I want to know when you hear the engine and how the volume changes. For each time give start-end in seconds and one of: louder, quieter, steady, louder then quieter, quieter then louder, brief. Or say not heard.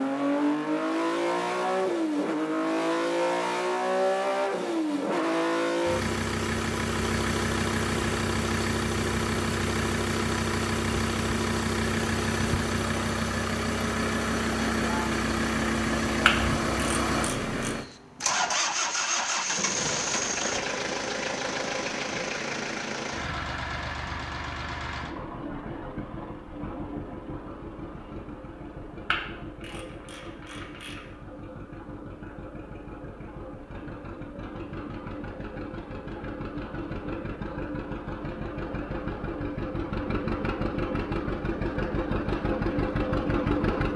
0.0-43.9 quieter then louder.